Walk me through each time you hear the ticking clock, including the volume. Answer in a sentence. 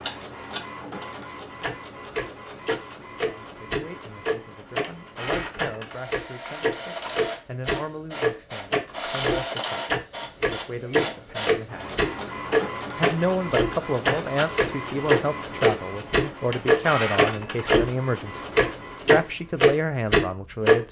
The ticking clock can be heard from 0.0 to 17.9 s, getting louder; and briefly from 18.6 to 20.8 s.